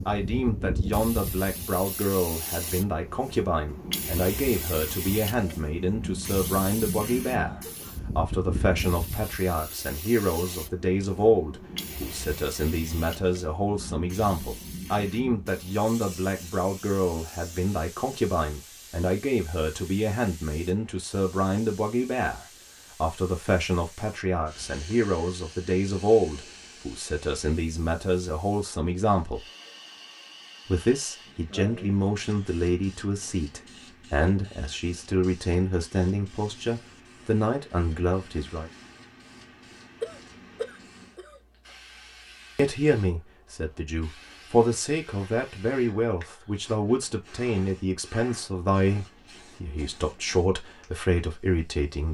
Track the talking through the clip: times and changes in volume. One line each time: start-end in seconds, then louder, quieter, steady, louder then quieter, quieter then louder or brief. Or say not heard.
0.1-29.5 steady
30.6-38.7 steady
42.5-52.1 steady.